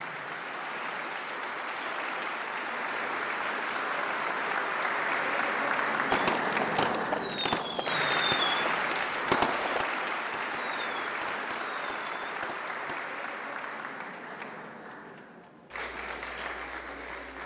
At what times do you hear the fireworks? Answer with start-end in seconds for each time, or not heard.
6.1-13.0.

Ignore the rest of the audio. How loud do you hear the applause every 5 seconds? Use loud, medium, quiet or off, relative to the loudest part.
loud, loud, medium, medium.